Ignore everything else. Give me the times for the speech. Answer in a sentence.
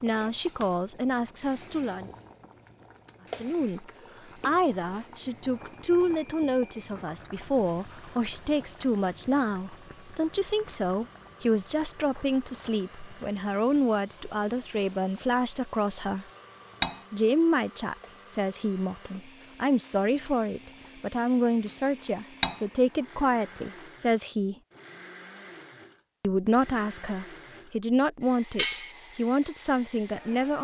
You can hear the speech from 0.0 to 2.1 s, from 3.4 to 16.2 s, from 17.1 to 24.6 s and from 26.2 to 30.5 s.